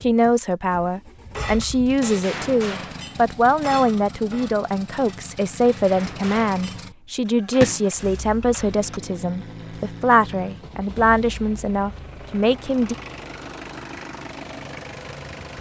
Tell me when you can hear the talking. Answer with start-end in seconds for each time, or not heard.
0.0-12.9.